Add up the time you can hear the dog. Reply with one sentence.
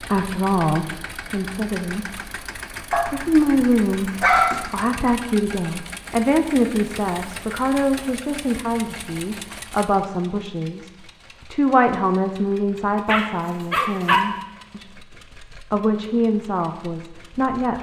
You can hear the dog for 3 seconds altogether.